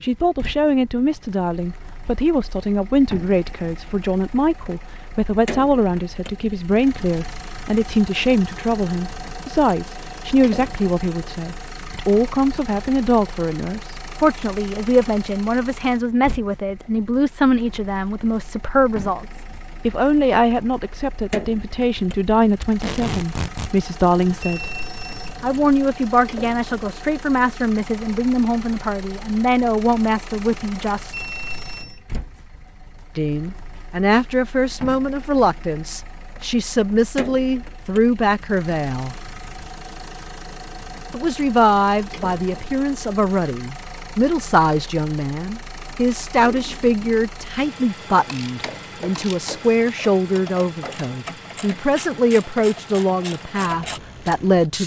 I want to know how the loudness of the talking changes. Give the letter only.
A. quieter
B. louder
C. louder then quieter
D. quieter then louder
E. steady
E.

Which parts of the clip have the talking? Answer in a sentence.
The talking can be heard from 0.0 to 24.8 s, from 25.4 to 31.2 s, from 33.1 to 39.1 s and from 41.1 to 54.8 s.